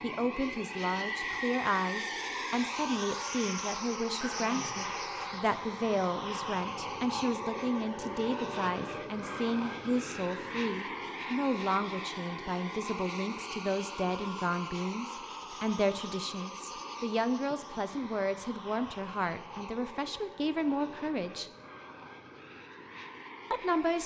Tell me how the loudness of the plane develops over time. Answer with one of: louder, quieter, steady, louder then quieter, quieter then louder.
quieter.